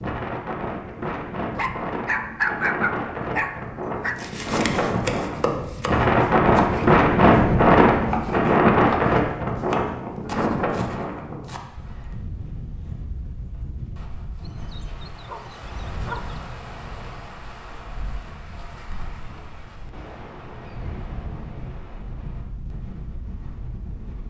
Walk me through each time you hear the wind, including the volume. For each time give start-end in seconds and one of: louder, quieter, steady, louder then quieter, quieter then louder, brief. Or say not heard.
0.0-24.2 louder then quieter.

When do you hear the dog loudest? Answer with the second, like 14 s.
3 s.